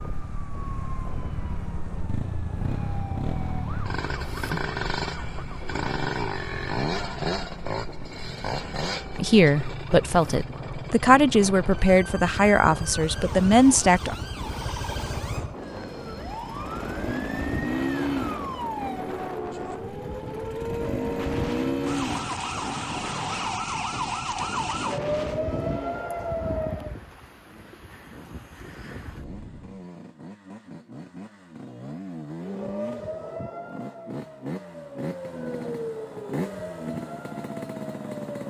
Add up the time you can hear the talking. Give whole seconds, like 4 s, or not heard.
5 s.